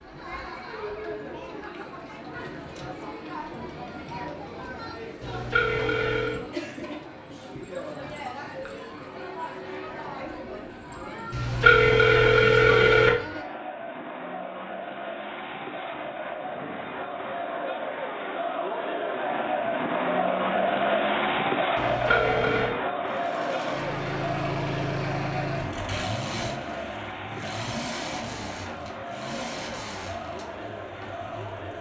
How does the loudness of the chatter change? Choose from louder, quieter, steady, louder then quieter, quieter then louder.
louder then quieter.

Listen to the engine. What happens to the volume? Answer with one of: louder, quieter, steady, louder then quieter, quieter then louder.
quieter.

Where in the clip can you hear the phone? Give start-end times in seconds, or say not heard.
5.2-6.4, 11.3-13.1, 21.8-22.8.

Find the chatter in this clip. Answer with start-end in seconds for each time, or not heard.
0.0-31.7.